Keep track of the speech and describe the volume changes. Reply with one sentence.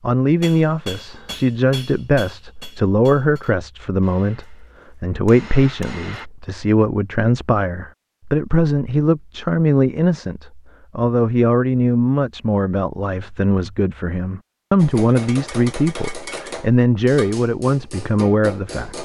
The volume of the speech stays about the same.